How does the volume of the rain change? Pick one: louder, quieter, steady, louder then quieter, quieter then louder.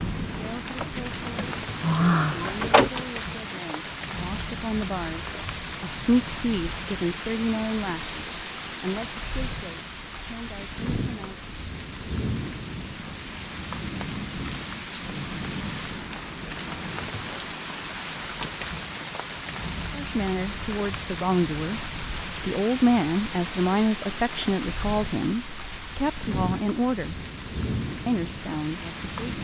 steady.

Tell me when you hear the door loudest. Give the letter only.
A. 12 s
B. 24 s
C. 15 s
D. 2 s
D.